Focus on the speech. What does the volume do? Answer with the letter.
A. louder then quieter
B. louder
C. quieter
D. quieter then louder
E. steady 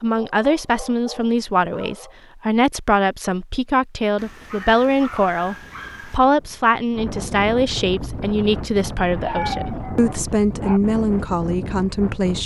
E.